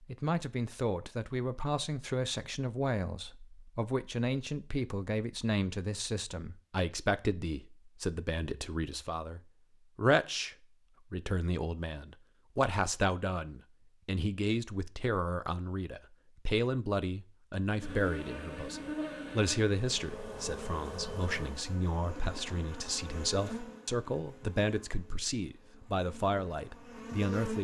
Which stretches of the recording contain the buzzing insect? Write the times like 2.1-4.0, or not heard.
17.8-27.6.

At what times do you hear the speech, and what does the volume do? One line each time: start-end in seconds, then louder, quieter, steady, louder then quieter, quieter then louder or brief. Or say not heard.
0.0-27.6 steady.